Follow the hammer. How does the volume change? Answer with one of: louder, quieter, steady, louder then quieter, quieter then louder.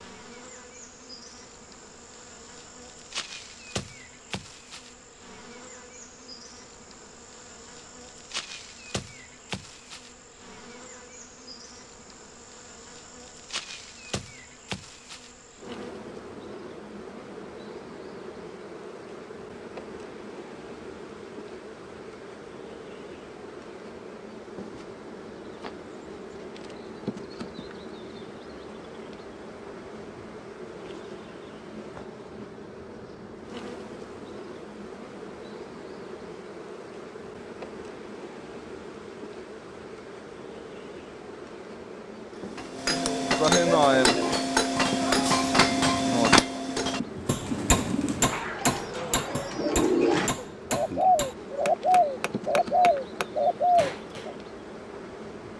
quieter.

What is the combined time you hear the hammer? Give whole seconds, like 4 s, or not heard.
12 s.